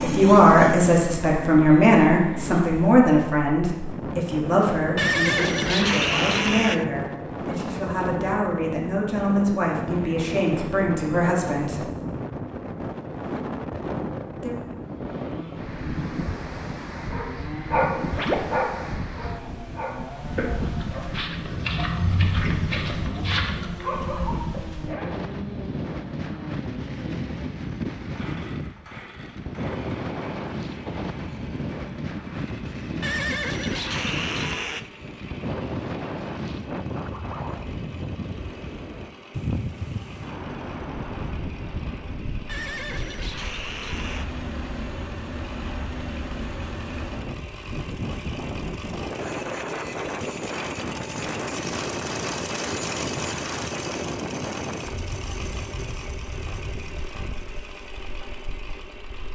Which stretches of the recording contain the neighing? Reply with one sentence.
The neighing can be heard from 5.0 to 6.8 s, from 33.0 to 34.9 s and from 42.5 to 44.2 s.